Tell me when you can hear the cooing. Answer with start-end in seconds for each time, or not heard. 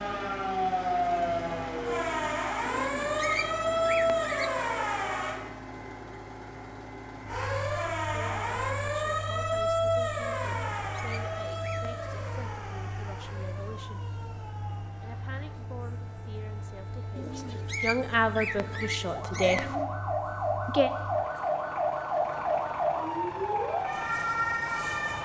2.6-4.7, 10.4-11.9, 17.1-19.9.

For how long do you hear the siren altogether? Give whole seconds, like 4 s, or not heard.
23 s.